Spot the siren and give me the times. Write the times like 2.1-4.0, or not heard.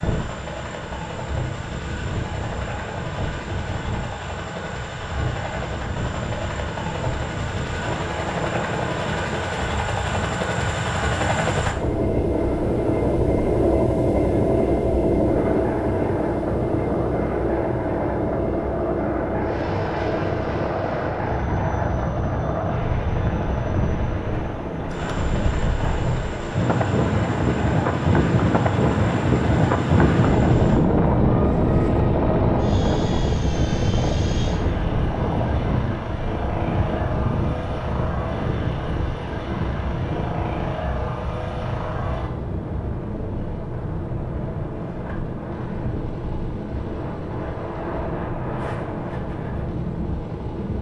not heard.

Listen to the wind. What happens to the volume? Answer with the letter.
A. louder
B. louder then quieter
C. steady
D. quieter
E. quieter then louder
B.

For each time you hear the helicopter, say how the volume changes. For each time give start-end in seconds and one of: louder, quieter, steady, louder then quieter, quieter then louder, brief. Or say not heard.
0.0-50.7 louder then quieter.